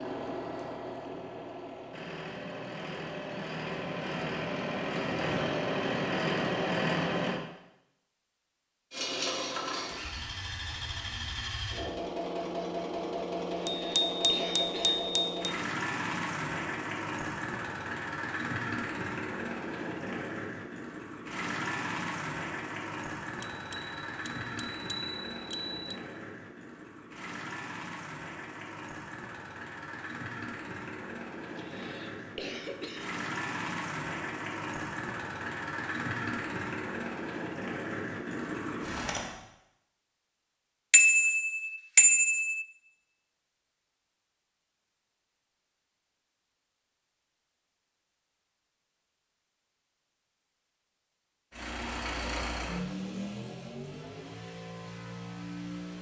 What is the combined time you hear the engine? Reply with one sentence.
You can hear the engine for 42 seconds altogether.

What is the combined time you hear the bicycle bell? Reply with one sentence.
The bicycle bell can be heard for 6 seconds in total.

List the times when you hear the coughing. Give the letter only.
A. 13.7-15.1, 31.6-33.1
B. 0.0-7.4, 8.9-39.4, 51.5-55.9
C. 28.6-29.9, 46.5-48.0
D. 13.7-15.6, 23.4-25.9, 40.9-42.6
A.